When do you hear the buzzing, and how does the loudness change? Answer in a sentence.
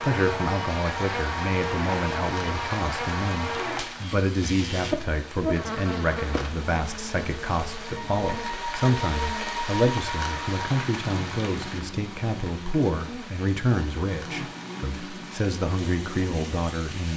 The buzzing can be heard from 0.0 to 17.1 s, getting quieter.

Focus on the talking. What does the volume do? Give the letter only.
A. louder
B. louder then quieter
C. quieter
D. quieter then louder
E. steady
E.